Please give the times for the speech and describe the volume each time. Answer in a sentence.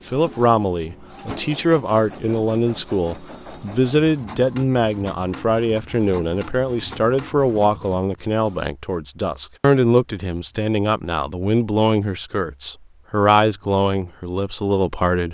The speech can be heard from 0.1 to 15.2 s, at a steady volume.